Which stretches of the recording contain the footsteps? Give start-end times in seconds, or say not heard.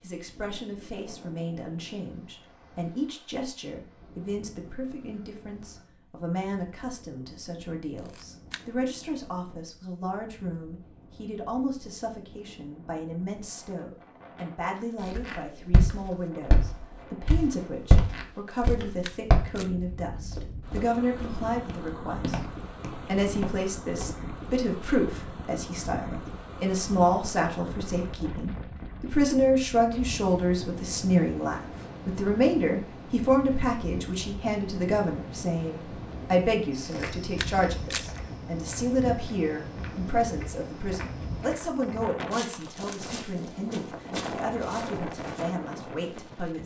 15.1-24.1, 36.8-45.9.